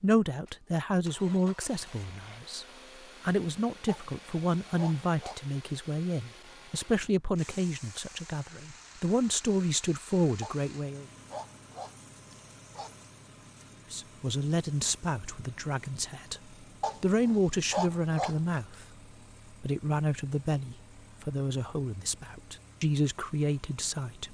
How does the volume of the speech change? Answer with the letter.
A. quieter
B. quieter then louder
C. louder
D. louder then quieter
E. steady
E.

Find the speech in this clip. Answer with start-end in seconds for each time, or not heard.
0.0-11.1, 13.9-18.9, 19.5-24.2.